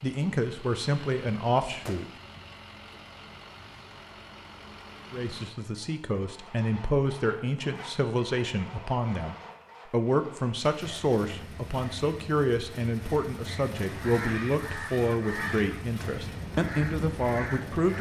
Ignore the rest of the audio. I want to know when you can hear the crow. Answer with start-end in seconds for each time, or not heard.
13.4-17.9.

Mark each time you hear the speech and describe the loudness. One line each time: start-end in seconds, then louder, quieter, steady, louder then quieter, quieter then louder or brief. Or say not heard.
0.0-2.0 brief
5.1-17.9 steady.